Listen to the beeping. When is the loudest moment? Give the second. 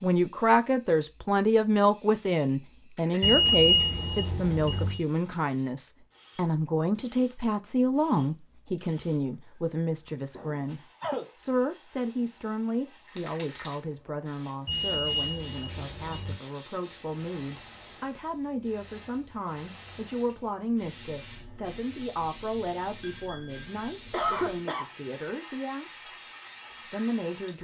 4 s.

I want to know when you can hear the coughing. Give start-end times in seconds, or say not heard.
3.0-4.8, 10.3-11.3, 24.1-24.9.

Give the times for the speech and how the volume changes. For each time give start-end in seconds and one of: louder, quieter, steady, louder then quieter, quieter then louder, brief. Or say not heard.
0.0-26.1 quieter
26.9-27.5 brief.